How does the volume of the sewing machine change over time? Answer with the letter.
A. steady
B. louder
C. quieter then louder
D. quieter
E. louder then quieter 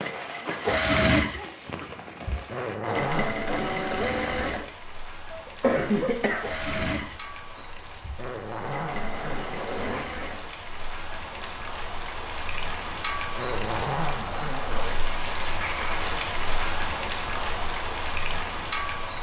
D.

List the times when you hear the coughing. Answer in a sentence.
You can hear the coughing from 5.5 to 6.5 s.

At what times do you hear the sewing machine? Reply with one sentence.
You can hear the sewing machine from 0.0 to 11.6 s.